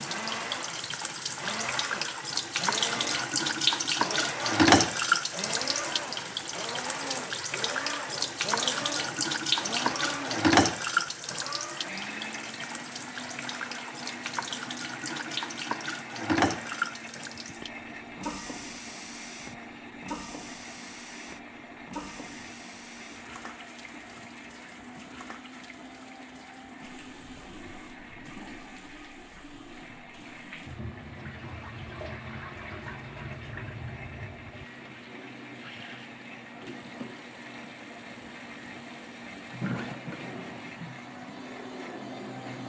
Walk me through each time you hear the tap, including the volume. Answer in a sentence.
The tap can be heard from 0.0 to 42.6 s, getting quieter.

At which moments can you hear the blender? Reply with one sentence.
The blender can be heard from 0.0 to 42.6 s.